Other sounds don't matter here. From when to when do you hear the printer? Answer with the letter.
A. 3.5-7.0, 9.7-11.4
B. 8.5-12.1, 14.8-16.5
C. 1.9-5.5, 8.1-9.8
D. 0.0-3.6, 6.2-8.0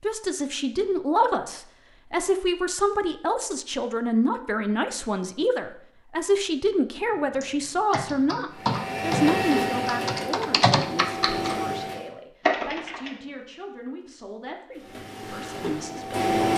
B.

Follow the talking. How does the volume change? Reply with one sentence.
The volume of the talking goes down.